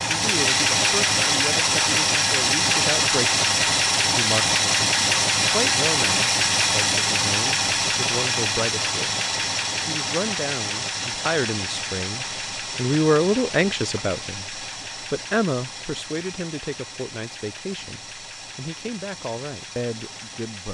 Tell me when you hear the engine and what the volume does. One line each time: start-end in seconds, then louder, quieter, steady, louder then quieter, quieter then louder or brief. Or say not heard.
0.0-20.6 quieter.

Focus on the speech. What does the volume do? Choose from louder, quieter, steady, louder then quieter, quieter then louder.
louder then quieter.